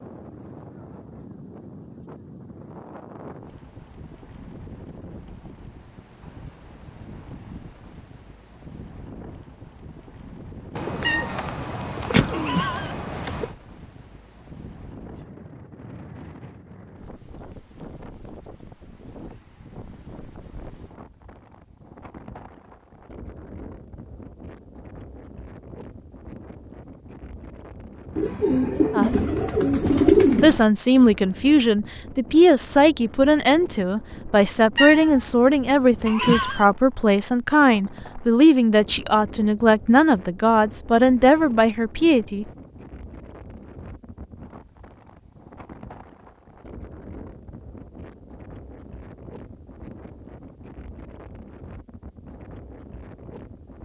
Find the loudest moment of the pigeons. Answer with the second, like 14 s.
30 s.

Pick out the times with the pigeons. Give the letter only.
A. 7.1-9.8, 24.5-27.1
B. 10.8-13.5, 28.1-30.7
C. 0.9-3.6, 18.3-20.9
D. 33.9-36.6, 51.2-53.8
B.